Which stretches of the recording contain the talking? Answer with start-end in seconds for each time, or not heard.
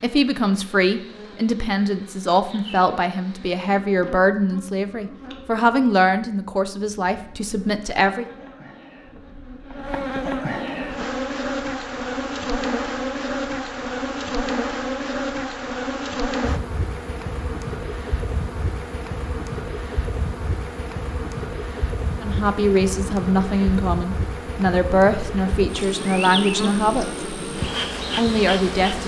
0.0-8.2, 22.2-27.2, 28.1-29.0.